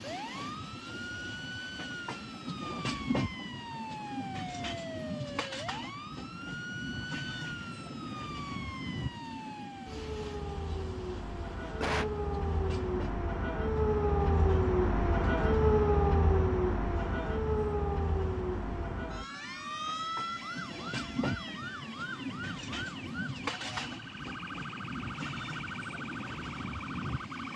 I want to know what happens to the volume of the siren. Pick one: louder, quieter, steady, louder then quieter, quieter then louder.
louder then quieter.